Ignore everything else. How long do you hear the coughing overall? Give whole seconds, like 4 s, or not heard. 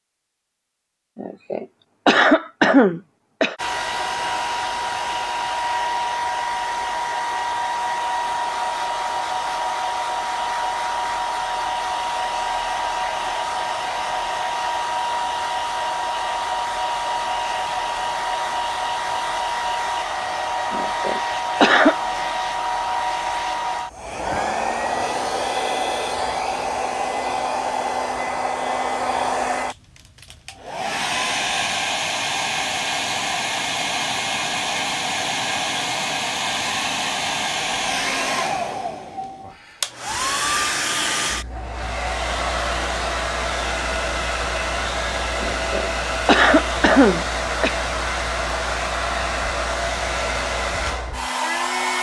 6 s.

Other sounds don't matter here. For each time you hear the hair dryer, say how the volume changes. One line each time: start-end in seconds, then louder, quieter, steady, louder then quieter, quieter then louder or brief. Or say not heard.
3.5-51.9 steady.